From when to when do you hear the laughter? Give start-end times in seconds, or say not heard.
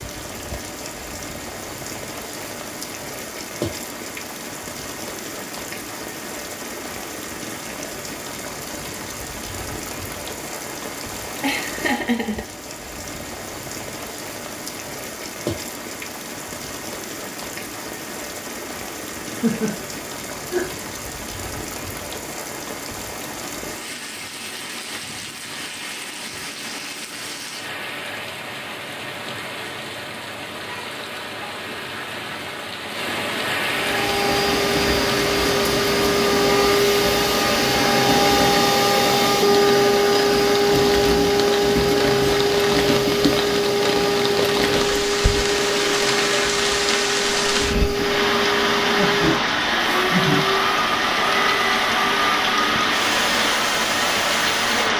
11.4-12.4, 19.2-20.8, 49.0-50.5.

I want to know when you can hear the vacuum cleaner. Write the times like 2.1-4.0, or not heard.
33.6-54.9.